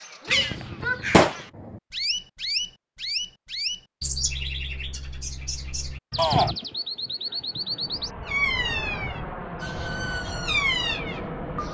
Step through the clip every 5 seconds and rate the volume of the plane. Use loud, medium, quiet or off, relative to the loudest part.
off, loud, loud.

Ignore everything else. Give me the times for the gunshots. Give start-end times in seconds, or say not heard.
0.3-1.8.